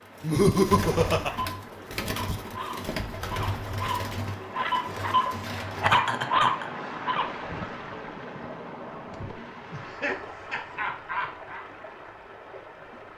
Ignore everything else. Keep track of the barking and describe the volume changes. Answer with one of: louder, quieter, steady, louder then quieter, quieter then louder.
louder.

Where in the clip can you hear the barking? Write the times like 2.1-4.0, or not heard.
1.2-7.7.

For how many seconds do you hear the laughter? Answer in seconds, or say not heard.
4 s.